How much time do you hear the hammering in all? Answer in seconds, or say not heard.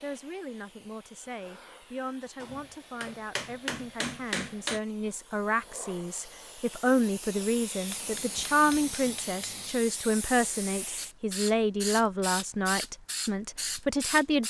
4 s.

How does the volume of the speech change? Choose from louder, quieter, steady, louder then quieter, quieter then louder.
louder.